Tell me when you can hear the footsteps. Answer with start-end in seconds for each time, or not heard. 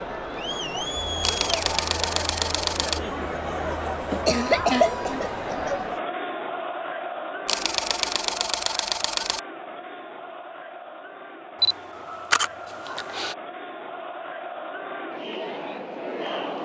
not heard.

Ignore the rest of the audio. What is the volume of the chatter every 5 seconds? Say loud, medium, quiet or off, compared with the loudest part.
loud, loud, medium, loud.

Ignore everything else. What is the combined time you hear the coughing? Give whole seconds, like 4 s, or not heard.
2 s.